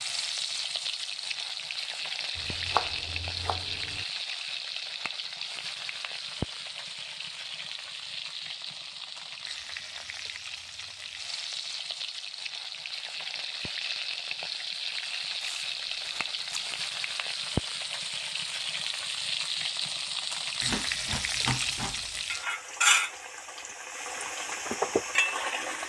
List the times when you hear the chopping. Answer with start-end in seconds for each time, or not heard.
2.4-4.0, 20.6-22.2.